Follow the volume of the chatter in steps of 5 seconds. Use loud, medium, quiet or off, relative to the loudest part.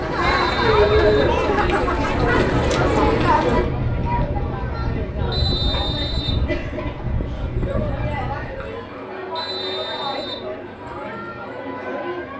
loud, medium, medium.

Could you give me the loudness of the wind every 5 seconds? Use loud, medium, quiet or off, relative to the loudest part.
loud, loud, off.